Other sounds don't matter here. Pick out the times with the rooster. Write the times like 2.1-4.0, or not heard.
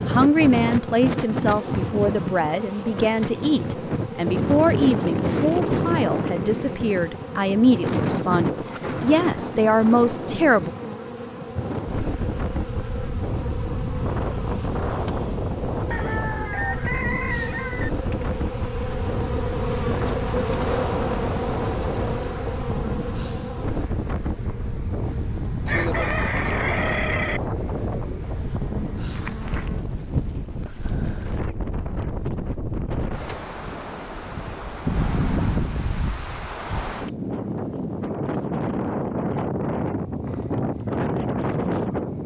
15.9-17.9, 25.6-27.4.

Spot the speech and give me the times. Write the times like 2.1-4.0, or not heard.
0.0-10.7.